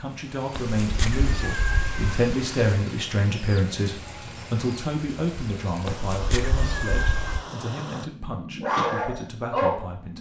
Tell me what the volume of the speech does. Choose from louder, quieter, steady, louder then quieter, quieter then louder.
quieter.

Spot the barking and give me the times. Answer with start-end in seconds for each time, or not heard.
8.2-10.1.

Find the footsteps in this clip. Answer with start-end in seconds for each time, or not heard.
not heard.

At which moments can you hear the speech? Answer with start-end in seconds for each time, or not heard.
0.0-10.1.